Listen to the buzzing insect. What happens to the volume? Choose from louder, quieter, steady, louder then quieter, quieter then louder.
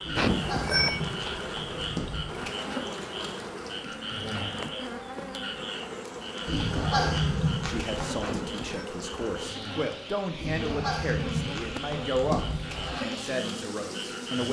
steady.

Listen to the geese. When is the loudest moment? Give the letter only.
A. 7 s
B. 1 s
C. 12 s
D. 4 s
A.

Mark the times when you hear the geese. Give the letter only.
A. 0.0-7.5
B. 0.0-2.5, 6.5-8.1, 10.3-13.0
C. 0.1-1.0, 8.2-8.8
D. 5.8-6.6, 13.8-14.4
B.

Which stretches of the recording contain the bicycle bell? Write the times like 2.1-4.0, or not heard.
0.1-1.0, 8.2-8.8.